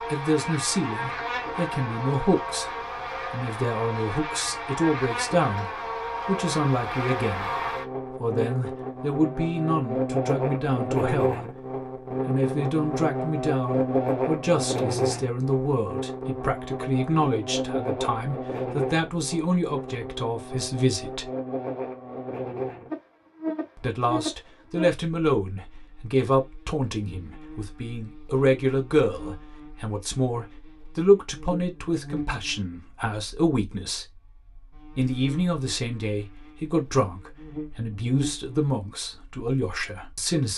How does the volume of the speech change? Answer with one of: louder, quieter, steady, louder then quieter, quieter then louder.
steady.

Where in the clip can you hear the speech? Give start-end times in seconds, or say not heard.
0.0-21.3, 23.8-34.1, 35.0-40.5.